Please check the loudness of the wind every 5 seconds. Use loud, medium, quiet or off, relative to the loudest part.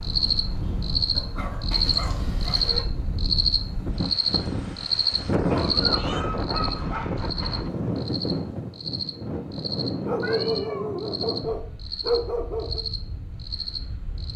medium, loud, medium.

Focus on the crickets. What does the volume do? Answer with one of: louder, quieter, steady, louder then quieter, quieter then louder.
quieter.